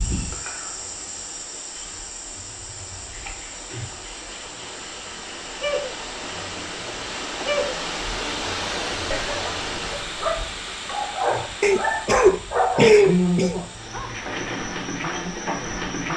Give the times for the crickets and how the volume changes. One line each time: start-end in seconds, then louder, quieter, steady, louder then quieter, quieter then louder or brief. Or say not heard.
0.0-16.1 quieter then louder.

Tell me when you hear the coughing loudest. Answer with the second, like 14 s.
13 s.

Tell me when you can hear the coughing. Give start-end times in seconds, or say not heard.
11.6-13.6.